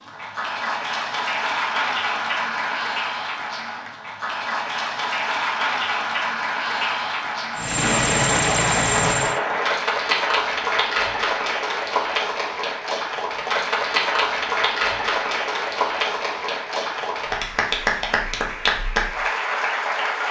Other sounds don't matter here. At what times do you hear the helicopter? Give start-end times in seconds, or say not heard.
7.5-9.4.